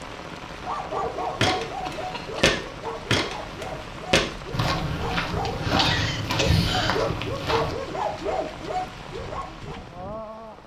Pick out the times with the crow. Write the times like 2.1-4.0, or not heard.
not heard.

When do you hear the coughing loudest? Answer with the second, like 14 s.
6 s.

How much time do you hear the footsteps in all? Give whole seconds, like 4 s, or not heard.
6 s.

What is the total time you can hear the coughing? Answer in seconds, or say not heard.
2 s.